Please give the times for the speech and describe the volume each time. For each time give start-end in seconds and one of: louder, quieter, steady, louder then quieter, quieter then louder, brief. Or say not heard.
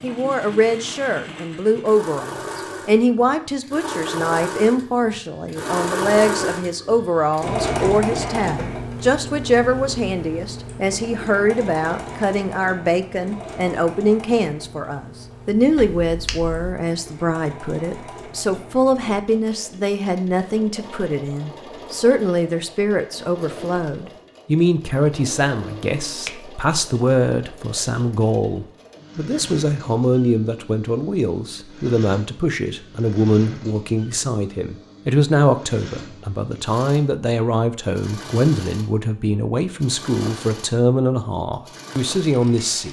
0.0-42.8 steady.